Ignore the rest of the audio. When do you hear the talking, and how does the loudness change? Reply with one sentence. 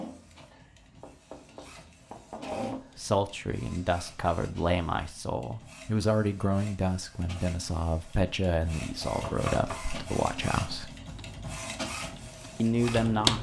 You can hear the talking from 2.5 to 10.9 s, at a steady volume; and briefly from 12.6 to 13.3 s.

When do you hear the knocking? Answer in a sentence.
The knocking can be heard from 0.5 to 2.8 s and from 9.2 to 9.8 s.